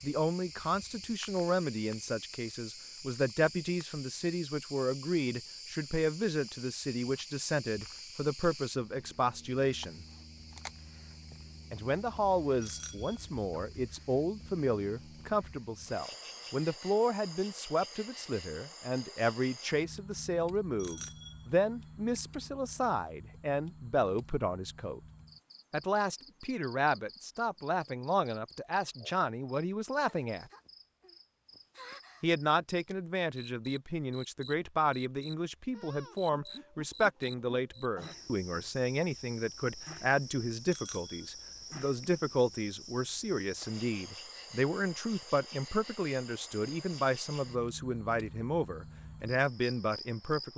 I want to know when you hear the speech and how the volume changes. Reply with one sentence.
The speech can be heard from 0.0 to 10.1 s, at a steady volume; from 11.7 to 25.0 s, at a steady volume; from 25.7 to 30.4 s, at a steady volume; and from 32.2 to 50.5 s, at a steady volume.